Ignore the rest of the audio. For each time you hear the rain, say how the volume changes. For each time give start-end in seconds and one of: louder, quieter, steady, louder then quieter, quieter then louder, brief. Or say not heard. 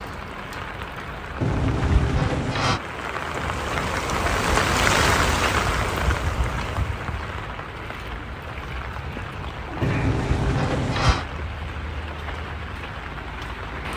0.0-13.9 louder then quieter.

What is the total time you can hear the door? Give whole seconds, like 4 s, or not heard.
3 s.